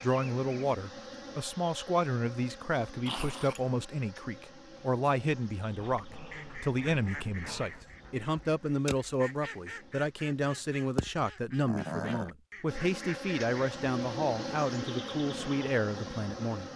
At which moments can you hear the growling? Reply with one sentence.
You can hear the growling from 3.0 to 3.6 s, from 5.9 to 7.8 s and from 11.7 to 12.3 s.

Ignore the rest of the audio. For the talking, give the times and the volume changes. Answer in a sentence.
The talking can be heard from 0.0 to 16.6 s, at a steady volume.